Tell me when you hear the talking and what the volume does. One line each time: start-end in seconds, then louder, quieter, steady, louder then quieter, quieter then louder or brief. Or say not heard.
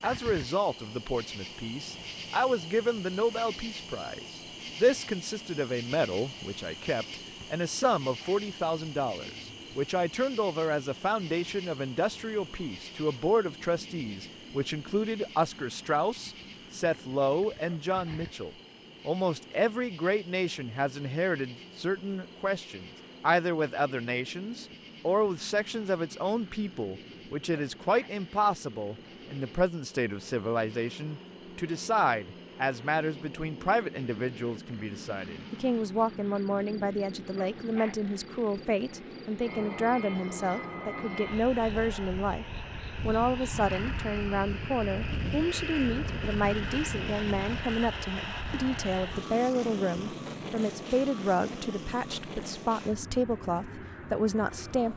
0.0-54.9 steady.